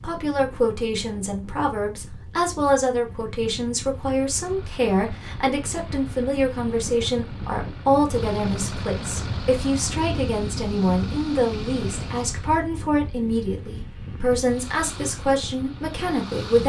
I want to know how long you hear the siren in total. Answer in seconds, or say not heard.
not heard.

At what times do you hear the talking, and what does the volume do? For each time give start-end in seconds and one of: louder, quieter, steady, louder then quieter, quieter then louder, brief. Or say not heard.
0.0-16.6 steady.